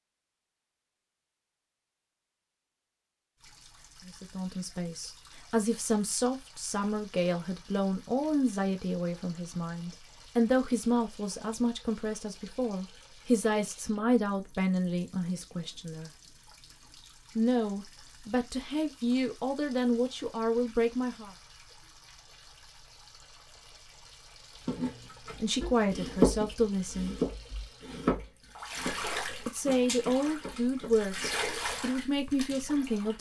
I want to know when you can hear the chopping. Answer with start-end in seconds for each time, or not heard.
24.6-31.4.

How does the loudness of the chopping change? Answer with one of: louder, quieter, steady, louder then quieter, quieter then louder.
quieter.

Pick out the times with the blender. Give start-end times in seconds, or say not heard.
not heard.